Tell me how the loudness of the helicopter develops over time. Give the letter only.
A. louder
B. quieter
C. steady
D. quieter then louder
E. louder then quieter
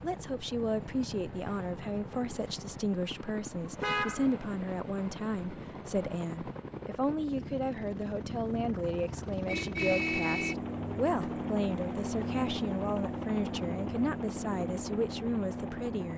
A.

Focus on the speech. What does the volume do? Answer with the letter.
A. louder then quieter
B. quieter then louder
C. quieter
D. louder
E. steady
E.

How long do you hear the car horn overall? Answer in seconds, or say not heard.
3 s.